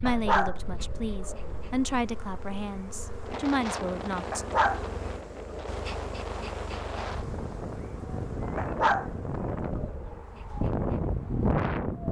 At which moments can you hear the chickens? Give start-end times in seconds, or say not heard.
not heard.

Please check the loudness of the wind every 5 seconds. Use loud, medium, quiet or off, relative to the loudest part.
medium, medium, loud.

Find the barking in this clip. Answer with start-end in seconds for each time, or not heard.
0.1-1.8, 4.3-5.8, 8.6-10.2.